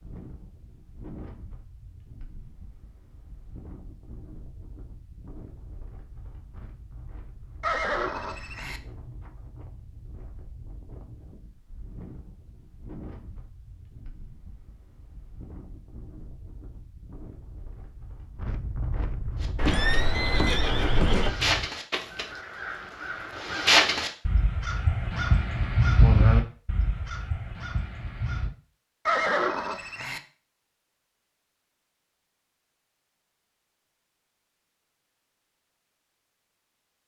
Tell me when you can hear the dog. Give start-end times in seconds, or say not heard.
not heard.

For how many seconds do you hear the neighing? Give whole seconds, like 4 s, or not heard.
4 s.